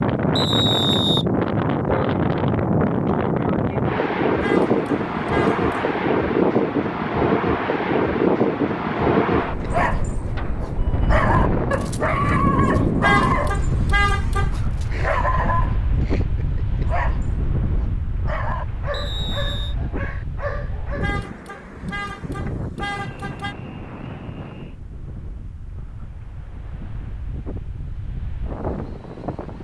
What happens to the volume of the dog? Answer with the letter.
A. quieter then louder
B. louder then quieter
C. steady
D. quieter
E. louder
D.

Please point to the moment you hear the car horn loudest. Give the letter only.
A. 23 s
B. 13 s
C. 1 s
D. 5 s
B.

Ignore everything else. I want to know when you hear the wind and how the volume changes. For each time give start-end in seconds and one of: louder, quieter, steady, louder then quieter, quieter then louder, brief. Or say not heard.
0.0-29.6 quieter.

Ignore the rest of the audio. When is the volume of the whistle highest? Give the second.
1 s.